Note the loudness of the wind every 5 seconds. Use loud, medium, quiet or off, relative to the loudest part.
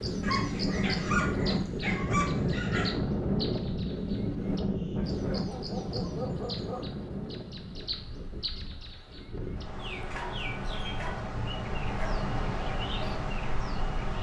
loud, medium, medium.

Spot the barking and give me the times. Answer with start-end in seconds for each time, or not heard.
0.2-3.0, 5.0-7.0, 10.1-12.2.